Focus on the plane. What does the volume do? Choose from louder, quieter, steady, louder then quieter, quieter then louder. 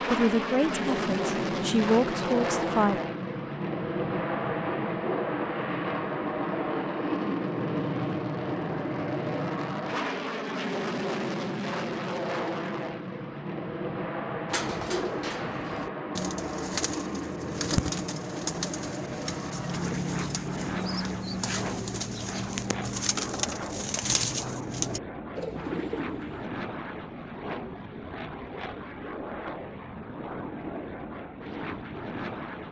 quieter.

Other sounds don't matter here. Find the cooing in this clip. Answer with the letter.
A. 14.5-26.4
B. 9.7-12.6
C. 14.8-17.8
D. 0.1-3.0
A.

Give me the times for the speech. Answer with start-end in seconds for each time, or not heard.
0.1-3.0.